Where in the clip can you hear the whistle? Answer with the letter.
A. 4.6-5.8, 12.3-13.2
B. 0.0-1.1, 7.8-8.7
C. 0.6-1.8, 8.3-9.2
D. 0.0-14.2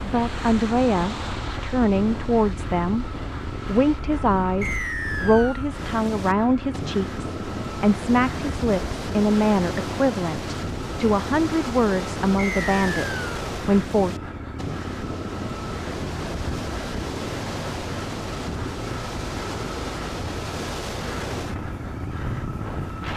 A.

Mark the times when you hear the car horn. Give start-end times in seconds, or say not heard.
not heard.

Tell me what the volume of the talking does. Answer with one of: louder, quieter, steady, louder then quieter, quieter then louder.
steady.